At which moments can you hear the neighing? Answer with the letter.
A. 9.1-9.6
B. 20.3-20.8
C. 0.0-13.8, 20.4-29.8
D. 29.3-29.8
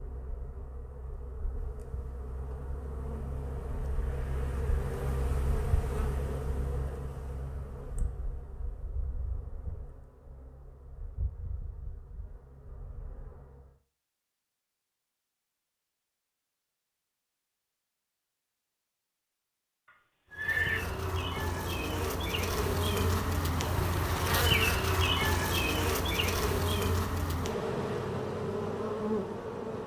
B.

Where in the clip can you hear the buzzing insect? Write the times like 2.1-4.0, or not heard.
0.0-13.8, 20.4-29.8.